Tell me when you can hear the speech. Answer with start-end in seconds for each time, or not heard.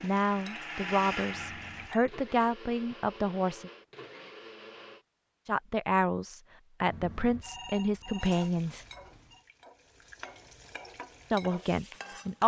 0.0-3.7, 5.5-8.8, 11.3-12.4.